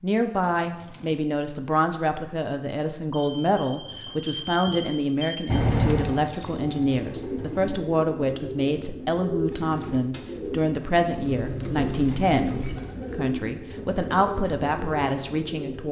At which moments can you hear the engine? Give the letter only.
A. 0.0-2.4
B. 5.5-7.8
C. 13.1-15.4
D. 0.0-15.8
B.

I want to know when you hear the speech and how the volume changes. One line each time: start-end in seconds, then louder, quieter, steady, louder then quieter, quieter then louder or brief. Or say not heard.
0.0-15.8 steady.